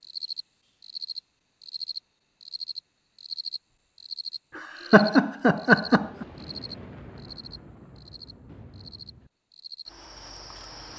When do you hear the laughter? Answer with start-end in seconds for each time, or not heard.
4.5-6.2.